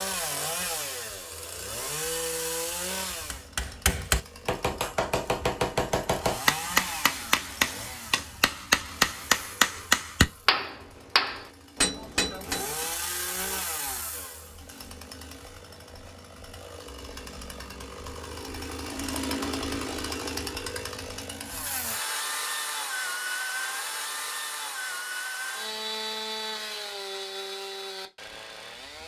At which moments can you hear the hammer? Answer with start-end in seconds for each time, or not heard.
3.1-12.9.